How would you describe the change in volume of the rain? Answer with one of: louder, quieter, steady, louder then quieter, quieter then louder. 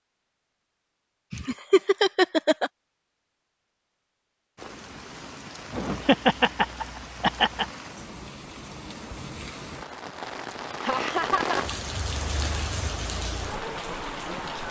louder.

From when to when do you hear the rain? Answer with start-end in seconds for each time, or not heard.
4.5-14.6.